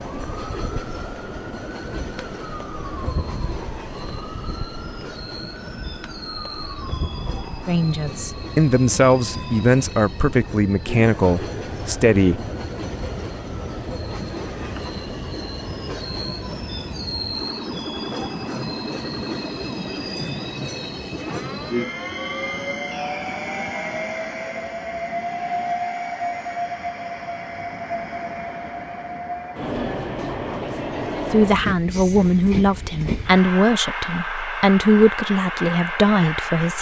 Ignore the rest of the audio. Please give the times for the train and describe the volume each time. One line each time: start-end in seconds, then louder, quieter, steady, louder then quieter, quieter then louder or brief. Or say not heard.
0.0-36.7 louder.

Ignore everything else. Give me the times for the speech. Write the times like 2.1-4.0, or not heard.
7.7-12.4, 31.3-36.7.